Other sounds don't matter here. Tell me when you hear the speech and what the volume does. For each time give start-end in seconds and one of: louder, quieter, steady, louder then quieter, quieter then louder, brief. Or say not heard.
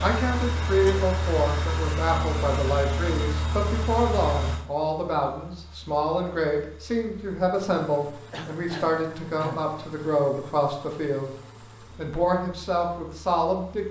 0.0-11.3 steady
11.9-13.8 brief.